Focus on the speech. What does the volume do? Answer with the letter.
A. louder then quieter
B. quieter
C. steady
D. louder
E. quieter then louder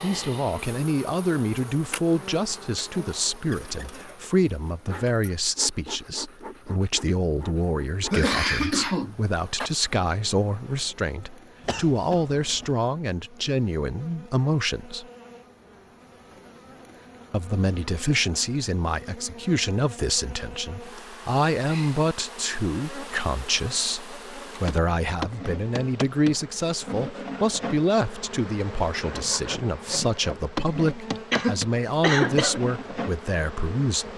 C.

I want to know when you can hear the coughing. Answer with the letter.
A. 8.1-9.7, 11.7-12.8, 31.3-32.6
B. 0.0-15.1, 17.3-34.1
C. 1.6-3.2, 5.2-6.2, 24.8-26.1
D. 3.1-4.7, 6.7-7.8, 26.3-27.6
A.